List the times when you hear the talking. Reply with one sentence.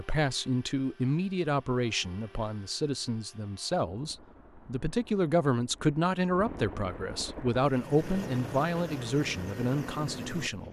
The talking can be heard from 0.0 to 10.6 s.